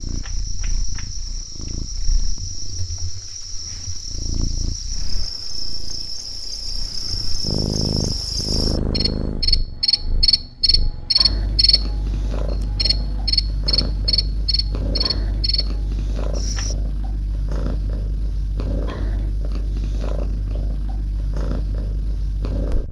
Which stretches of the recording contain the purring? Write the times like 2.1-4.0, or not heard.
0.0-22.8.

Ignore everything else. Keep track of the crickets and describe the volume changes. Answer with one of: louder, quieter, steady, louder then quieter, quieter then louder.
louder.